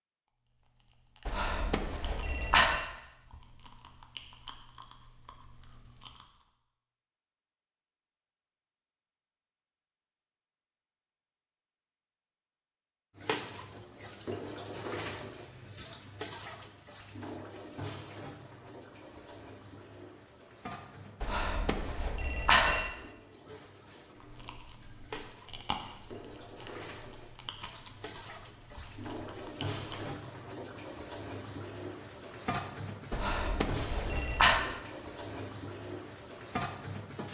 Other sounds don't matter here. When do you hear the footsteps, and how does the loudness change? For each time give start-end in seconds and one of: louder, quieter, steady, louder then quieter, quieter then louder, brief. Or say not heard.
not heard.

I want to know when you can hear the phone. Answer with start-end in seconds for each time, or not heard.
1.2-2.9, 21.2-22.9, 33.1-34.6.